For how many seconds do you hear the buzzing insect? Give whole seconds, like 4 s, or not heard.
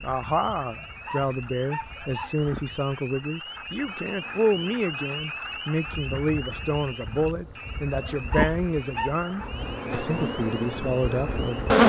12 s.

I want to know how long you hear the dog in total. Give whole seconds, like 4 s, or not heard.
3 s.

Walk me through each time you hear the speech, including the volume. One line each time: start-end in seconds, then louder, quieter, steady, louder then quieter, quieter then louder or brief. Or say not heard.
0.0-11.8 steady.